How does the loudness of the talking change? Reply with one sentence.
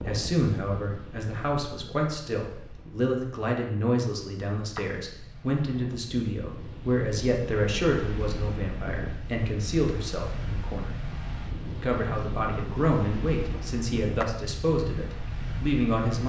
The loudness of the talking stays about the same.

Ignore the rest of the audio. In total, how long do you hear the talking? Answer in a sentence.
You can hear the talking for 15 seconds altogether.